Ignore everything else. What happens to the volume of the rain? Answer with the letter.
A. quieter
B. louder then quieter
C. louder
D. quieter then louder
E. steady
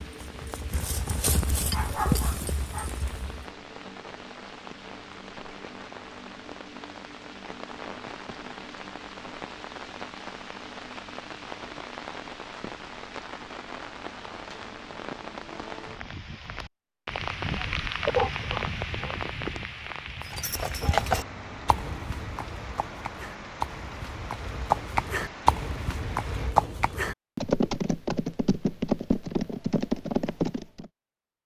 B.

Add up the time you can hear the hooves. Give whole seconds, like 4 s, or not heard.
14 s.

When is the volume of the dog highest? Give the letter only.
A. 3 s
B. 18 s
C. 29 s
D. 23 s
B.